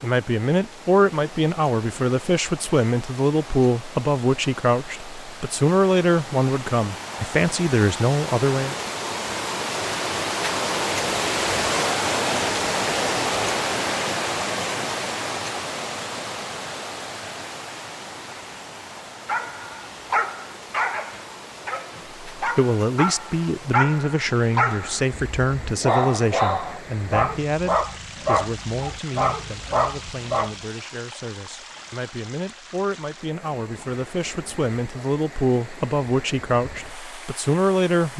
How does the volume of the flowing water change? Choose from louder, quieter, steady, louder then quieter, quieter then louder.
louder then quieter.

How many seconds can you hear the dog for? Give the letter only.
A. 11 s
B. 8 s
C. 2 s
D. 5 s
A.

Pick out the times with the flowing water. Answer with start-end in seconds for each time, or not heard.
0.0-38.1.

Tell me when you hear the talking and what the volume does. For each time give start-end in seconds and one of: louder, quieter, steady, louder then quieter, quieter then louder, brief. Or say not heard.
0.0-8.8 steady
22.4-38.1 quieter then louder.